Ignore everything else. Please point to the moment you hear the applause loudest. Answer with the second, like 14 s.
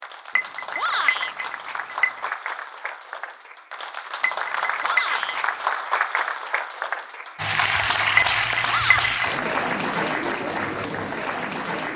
8 s.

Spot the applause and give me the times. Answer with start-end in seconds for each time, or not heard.
0.0-11.9.